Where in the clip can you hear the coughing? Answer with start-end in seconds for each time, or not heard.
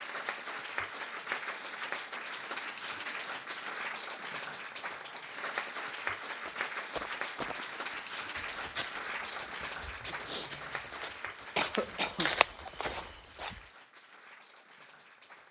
11.6-12.3.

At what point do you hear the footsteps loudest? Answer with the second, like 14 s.
12 s.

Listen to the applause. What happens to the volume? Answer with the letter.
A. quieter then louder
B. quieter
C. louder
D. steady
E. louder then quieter
B.